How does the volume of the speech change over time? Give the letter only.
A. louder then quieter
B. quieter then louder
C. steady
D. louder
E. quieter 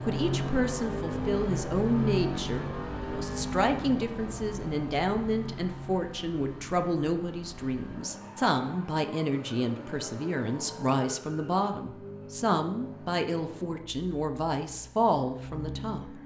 C.